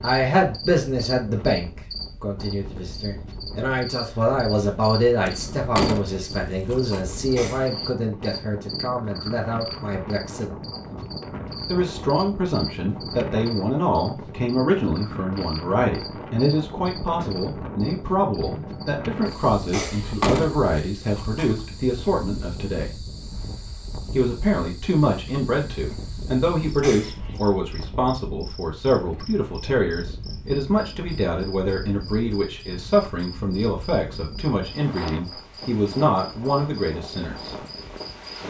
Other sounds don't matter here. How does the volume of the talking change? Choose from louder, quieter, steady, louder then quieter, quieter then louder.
steady.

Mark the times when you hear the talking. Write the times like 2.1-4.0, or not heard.
0.0-10.6, 11.7-23.0, 24.1-37.5.